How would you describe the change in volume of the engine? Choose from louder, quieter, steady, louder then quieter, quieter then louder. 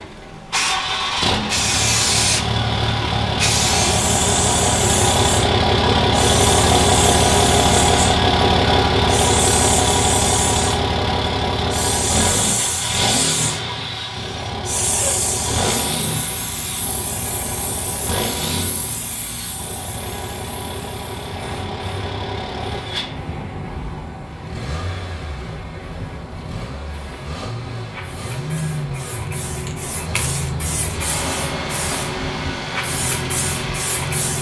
quieter.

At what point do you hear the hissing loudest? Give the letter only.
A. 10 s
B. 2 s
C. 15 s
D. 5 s
B.